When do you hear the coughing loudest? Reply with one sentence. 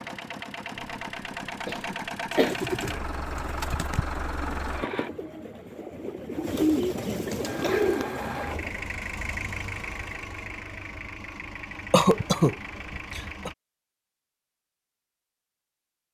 The volume of the coughing peaks at 12 seconds.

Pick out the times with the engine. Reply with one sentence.
You can hear the engine from 0.0 to 5.1 s and from 7.4 to 13.6 s.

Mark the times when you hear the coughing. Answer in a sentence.
You can hear the coughing from 1.6 to 2.6 s, from 7.2 to 8.1 s and from 11.9 to 13.5 s.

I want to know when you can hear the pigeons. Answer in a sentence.
You can hear the pigeons from 2.3 to 8.9 s.